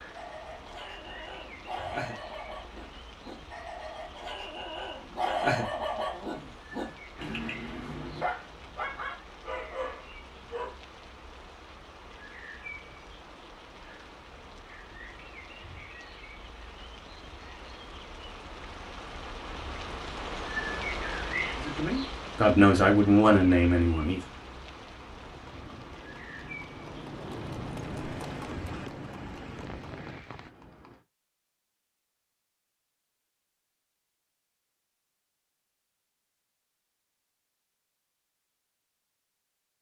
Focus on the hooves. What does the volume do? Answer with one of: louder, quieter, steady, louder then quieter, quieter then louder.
louder then quieter.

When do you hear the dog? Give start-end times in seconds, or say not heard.
0.1-10.8.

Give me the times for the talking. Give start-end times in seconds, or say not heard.
21.6-24.2.